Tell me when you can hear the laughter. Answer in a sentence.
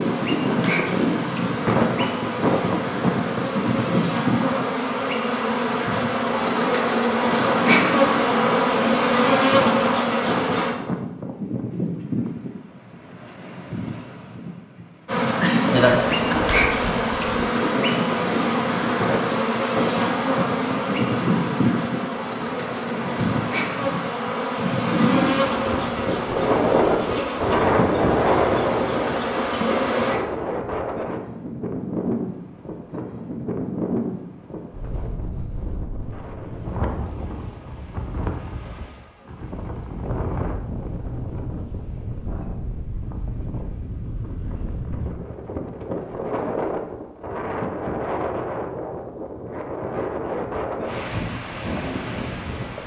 The laughter can be heard from 15.4 to 16.4 s.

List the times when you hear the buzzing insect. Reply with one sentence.
You can hear the buzzing insect from 0.0 to 10.8 s and from 15.1 to 30.2 s.